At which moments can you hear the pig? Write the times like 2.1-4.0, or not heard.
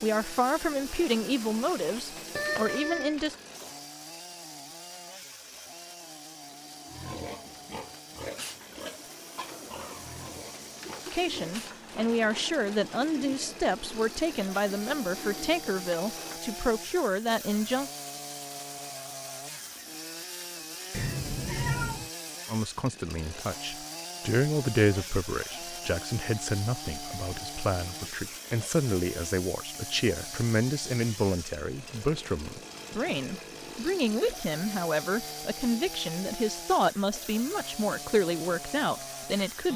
6.9-12.2.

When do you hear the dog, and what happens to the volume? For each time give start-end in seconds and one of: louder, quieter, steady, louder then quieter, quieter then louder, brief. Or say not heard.
not heard.